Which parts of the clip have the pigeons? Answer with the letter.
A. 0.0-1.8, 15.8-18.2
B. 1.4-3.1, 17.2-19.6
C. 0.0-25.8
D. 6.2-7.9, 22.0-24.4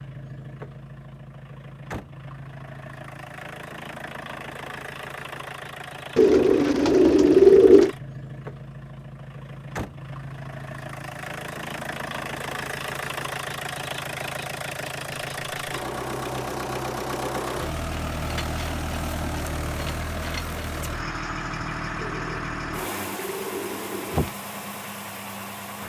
D.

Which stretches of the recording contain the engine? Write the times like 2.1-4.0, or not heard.
0.0-25.8.